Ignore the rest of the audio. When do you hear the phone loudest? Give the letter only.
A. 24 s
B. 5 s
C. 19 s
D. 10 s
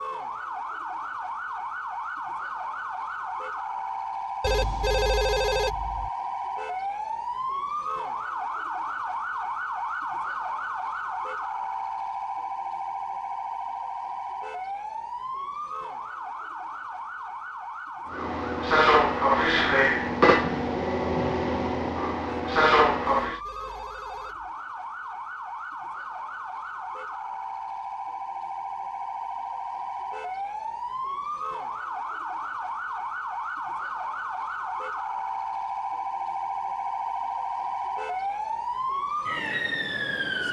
B.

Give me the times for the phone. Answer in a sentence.
The phone can be heard from 4.4 to 6.1 s and from 23.2 to 24.6 s.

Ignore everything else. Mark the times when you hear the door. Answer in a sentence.
The door can't be heard in this clip.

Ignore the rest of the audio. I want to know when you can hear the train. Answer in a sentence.
You can hear the train from 18.1 to 23.4 s.